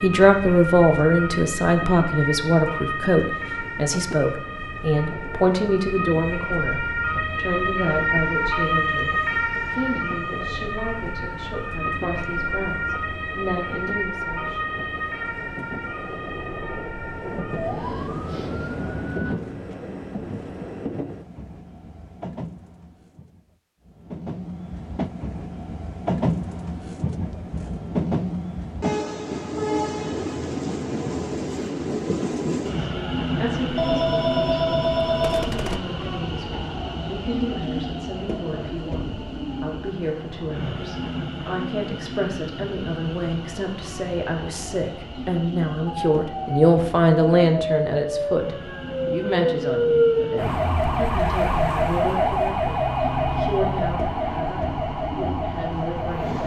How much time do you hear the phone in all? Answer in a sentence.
You can hear the phone for 2 seconds altogether.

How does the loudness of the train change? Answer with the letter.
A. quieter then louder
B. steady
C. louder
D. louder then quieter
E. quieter
D.